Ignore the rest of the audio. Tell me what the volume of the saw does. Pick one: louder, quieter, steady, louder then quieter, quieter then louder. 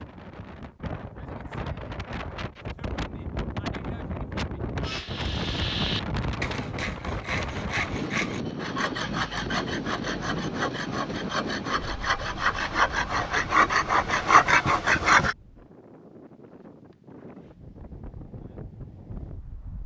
louder.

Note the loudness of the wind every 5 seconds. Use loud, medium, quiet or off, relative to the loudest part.
loud, loud, loud, quiet.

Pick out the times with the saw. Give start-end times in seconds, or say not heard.
4.8-15.3.